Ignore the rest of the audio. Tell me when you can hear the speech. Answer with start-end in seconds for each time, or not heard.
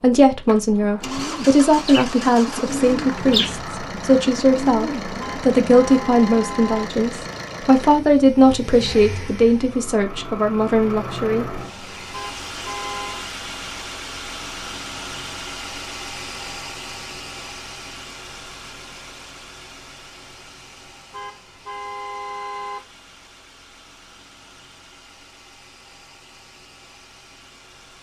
0.0-11.6.